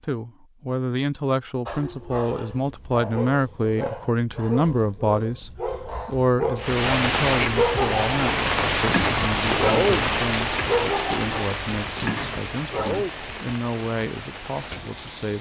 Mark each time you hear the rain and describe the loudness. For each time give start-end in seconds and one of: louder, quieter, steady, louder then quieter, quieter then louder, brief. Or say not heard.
6.5-15.3 quieter.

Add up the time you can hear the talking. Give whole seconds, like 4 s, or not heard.
15 s.